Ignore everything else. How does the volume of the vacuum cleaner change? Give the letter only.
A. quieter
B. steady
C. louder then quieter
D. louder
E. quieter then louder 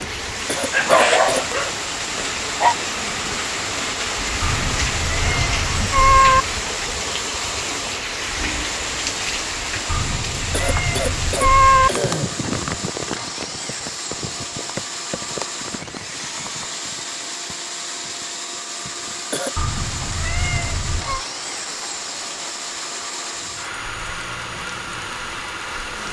B.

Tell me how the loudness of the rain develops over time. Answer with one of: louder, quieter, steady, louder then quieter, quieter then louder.
quieter.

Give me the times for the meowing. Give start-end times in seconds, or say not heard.
4.4-6.5, 9.8-11.9, 19.6-21.2.